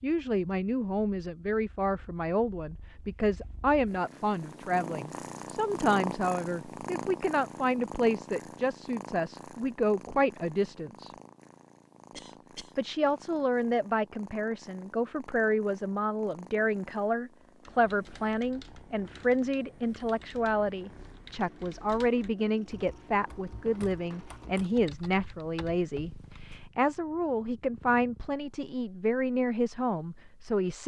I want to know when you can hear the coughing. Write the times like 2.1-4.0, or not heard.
12.1-12.8.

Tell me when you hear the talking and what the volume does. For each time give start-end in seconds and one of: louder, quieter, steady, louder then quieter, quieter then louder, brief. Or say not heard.
0.0-11.1 steady
12.8-30.8 steady.